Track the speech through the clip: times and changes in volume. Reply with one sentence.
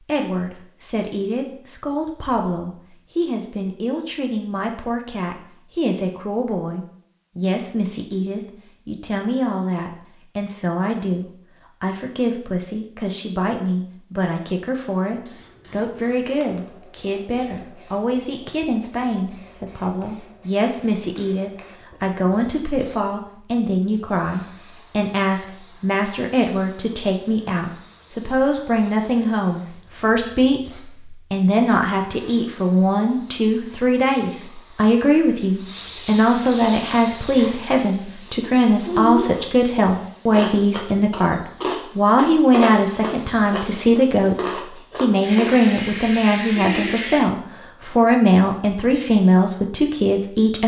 The speech can be heard from 0.0 to 50.6 s, getting louder.